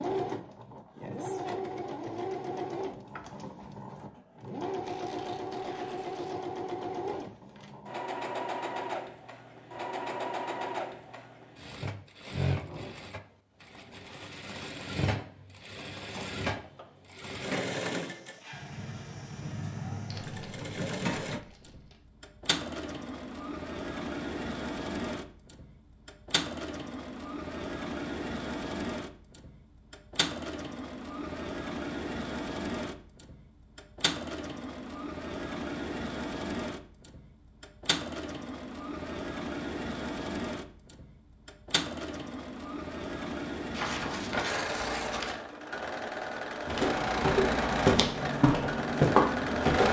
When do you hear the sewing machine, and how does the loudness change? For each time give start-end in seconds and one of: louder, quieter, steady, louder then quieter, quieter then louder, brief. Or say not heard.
0.0-49.8 steady.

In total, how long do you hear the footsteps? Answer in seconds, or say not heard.
3 s.